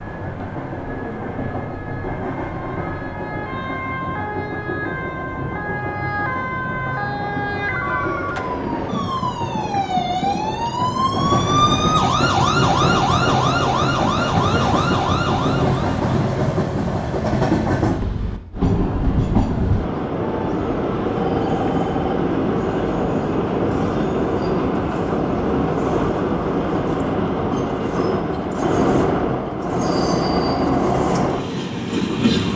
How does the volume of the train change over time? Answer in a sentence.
The loudness of the train goes up.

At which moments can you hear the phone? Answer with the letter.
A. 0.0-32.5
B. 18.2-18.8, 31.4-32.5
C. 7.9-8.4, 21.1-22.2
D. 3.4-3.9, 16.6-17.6
C.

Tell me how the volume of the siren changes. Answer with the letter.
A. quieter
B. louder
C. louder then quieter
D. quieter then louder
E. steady
B.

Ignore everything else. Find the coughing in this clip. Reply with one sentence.
The coughing can't be heard in this clip.